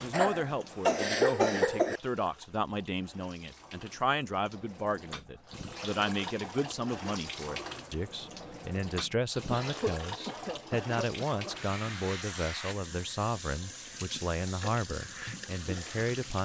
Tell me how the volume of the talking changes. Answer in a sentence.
The volume of the talking stays about the same.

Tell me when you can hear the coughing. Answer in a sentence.
The coughing can be heard from 0.1 to 2.0 s and from 9.5 to 11.6 s.